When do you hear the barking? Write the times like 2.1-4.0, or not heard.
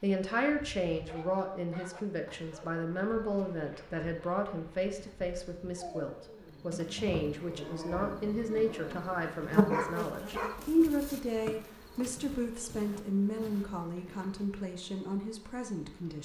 1.1-10.6.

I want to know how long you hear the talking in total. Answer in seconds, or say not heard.
16 s.